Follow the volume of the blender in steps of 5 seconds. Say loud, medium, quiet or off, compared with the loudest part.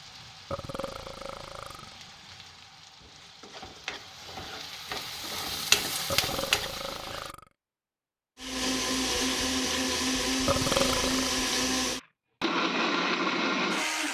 off, loud, loud.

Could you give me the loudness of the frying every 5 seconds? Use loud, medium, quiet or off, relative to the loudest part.
quiet, loud, off.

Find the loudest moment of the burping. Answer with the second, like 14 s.
11 s.